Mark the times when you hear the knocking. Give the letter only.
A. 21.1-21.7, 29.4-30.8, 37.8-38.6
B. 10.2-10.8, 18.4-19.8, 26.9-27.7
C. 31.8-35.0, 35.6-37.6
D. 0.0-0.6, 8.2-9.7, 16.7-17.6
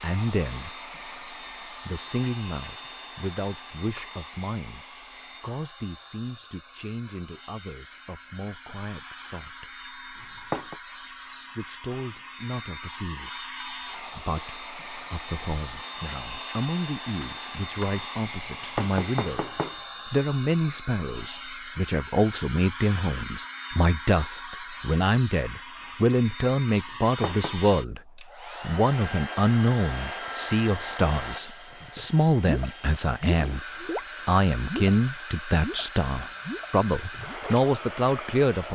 B.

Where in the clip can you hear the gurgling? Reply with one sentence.
The gurgling can be heard from 31.8 to 35.0 s and from 35.6 to 37.6 s.